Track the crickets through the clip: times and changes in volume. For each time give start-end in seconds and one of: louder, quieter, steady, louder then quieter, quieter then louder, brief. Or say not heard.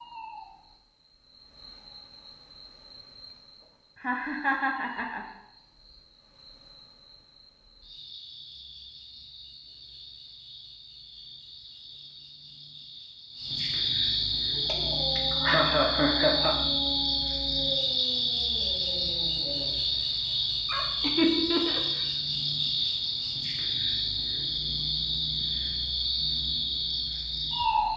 0.0-27.9 louder.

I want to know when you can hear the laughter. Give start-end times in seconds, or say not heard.
4.0-5.2, 14.7-16.6, 21.0-22.1.